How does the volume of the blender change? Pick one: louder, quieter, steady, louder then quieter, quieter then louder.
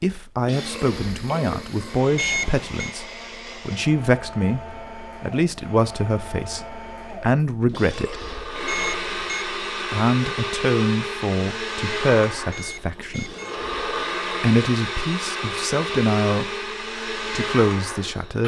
louder.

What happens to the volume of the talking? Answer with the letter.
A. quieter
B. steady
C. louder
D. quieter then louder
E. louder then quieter
B.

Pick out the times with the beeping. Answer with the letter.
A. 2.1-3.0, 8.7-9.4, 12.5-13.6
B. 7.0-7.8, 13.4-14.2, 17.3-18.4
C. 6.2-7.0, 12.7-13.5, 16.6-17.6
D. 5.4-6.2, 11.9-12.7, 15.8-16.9
A.